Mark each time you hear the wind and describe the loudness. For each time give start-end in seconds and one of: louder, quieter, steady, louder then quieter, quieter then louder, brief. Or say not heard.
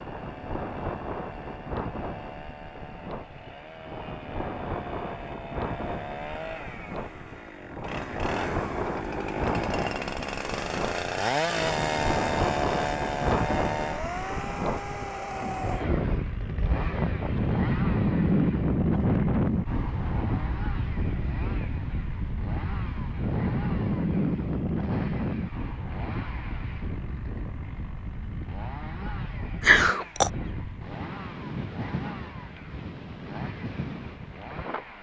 0.0-34.9 louder then quieter.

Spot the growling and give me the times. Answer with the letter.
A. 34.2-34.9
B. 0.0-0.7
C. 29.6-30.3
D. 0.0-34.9
C.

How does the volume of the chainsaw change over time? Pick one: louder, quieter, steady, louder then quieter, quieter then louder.
louder then quieter.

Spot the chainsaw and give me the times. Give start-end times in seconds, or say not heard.
0.0-34.9.